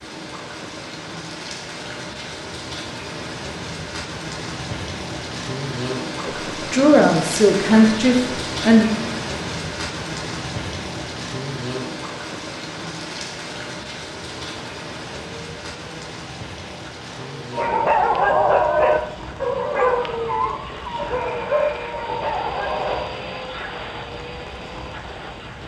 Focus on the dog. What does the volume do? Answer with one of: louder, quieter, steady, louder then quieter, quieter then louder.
quieter.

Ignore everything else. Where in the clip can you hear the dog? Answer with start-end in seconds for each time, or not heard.
17.5-23.0.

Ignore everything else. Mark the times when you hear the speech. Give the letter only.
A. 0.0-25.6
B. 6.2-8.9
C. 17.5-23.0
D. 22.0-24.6
B.